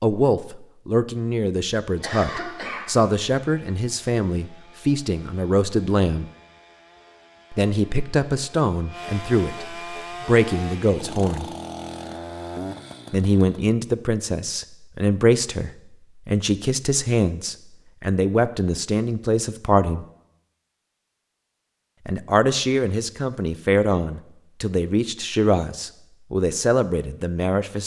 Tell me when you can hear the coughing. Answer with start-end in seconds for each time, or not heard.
2.0-2.9.